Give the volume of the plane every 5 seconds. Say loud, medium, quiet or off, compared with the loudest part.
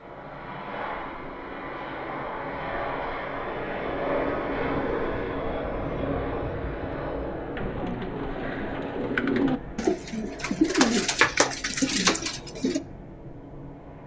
loud, loud, medium.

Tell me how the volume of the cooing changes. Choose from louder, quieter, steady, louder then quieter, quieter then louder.
louder.